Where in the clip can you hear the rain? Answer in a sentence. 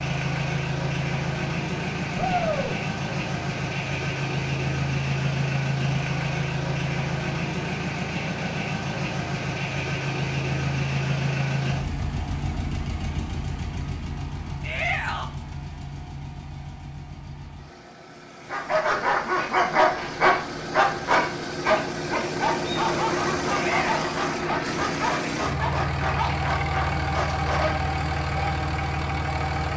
You can't hear the rain here.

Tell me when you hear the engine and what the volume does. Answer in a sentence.
The engine can be heard from 0.0 to 29.7 s, getting quieter then louder.